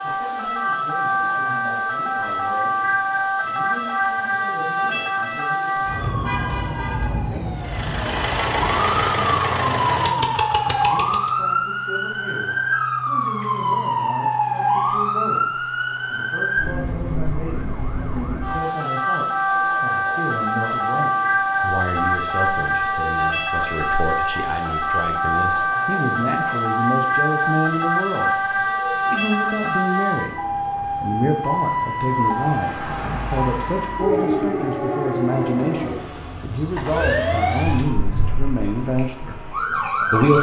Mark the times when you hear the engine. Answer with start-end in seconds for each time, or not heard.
7.5-11.3.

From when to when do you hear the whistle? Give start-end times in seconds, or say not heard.
not heard.